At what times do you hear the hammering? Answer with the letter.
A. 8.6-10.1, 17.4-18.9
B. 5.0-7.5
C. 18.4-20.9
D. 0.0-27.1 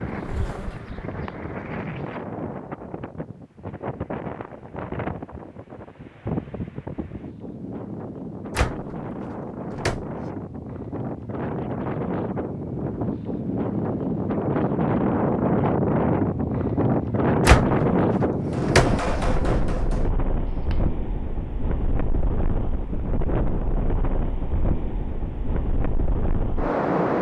C.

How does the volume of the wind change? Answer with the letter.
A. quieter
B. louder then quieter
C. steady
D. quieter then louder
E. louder
B.